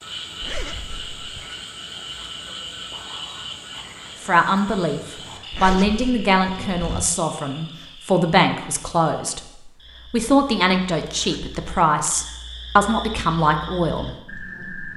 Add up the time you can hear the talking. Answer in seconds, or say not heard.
10 s.